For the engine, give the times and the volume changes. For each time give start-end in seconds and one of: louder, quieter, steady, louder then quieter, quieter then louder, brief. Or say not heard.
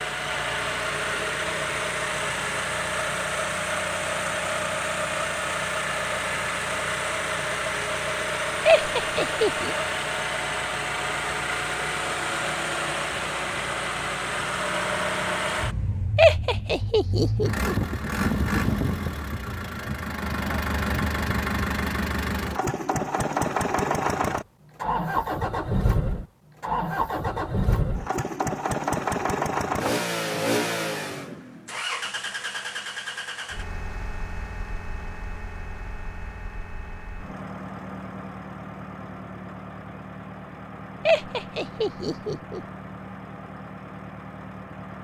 0.0-45.0 quieter.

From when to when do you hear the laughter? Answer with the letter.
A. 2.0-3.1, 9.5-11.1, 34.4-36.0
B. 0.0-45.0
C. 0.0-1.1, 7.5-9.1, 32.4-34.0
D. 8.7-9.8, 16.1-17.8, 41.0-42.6
D.